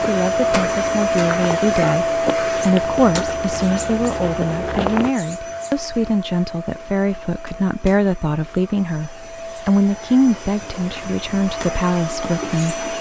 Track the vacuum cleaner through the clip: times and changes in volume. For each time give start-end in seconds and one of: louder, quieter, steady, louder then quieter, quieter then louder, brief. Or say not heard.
0.0-12.9 quieter then louder.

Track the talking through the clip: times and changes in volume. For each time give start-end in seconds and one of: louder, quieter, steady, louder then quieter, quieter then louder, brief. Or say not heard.
0.0-12.8 steady.